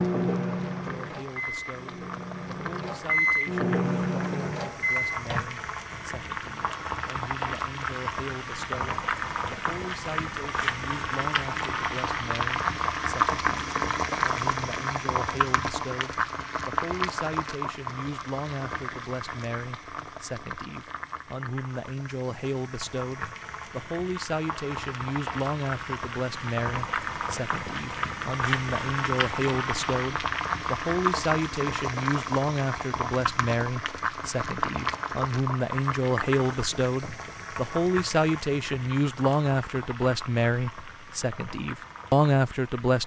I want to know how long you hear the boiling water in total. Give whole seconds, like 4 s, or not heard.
43 s.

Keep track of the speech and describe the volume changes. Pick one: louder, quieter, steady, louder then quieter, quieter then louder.
louder.